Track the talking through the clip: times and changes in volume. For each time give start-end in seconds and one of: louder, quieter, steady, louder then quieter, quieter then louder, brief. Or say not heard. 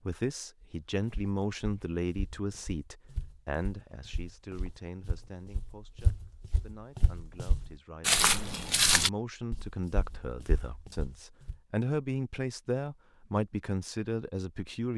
0.1-14.9 quieter then louder.